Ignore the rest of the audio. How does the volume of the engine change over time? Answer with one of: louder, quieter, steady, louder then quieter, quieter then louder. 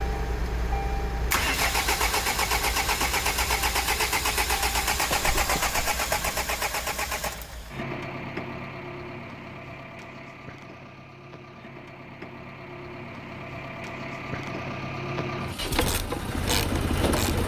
quieter then louder.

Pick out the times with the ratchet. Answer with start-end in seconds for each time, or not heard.
15.8-17.4.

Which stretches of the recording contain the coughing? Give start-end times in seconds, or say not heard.
5.1-6.5.